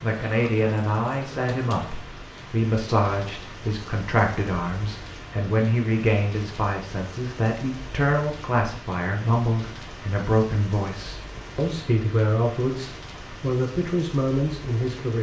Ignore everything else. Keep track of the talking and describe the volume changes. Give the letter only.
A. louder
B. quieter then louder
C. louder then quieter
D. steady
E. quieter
D.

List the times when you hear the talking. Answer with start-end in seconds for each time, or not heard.
0.0-15.1.